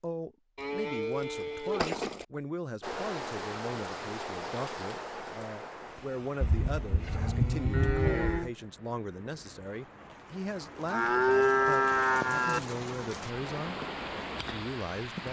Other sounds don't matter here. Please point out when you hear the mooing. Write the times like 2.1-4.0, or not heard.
0.6-2.2, 6.4-8.5, 10.9-12.6.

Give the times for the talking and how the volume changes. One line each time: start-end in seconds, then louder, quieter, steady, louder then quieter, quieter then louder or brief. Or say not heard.
0.0-13.8 steady
14.4-15.2 brief.